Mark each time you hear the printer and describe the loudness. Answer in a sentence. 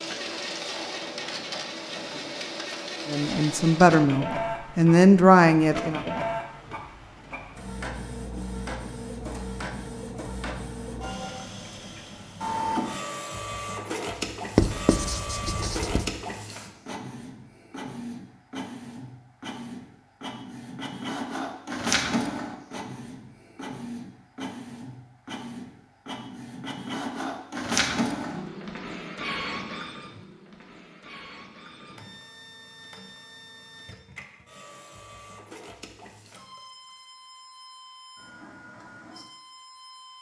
You can hear the printer from 0.0 to 40.1 s, getting quieter.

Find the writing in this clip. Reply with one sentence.
You can hear the writing from 14.6 to 16.1 s.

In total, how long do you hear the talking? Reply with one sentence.
You can hear the talking for 3 seconds altogether.